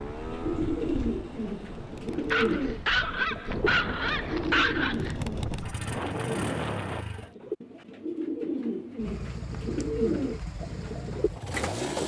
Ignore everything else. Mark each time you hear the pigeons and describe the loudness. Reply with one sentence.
You can hear the pigeons from 0.4 to 12.0 s, getting quieter then louder.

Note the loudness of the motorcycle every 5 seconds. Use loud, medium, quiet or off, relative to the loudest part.
medium, loud, loud.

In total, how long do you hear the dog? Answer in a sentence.
You can hear the dog for 3 seconds altogether.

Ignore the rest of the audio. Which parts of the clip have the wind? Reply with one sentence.
The wind can be heard from 0.0 to 7.0 s.